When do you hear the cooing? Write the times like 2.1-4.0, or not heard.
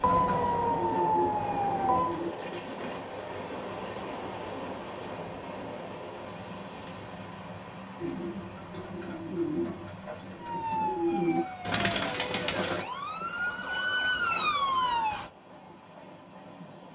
0.0-2.3, 8.0-12.8.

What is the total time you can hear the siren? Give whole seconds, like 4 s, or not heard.
7 s.